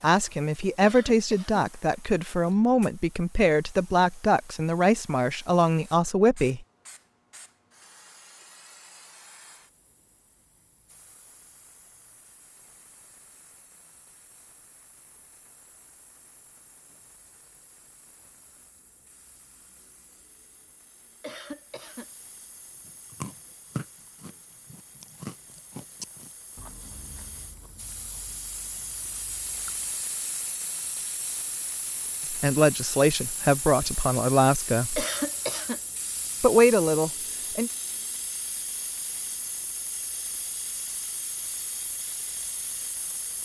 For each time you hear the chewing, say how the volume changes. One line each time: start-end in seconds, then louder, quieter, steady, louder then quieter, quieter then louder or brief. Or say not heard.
22.9-29.9 quieter.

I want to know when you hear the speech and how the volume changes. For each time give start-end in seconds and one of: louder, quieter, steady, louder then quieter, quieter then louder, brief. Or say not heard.
0.0-6.6 steady
32.3-35.0 brief
36.4-37.7 brief.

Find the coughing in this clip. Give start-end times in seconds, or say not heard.
0.8-1.6, 21.2-22.1, 35.0-35.8.